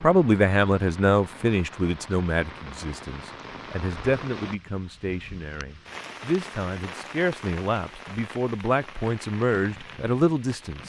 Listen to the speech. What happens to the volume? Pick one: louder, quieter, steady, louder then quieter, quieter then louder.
quieter then louder.